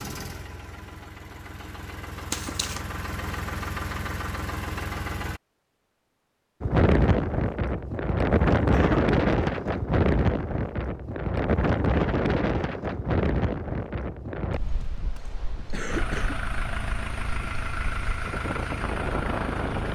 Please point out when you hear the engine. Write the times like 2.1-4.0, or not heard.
0.0-5.4, 15.9-19.9.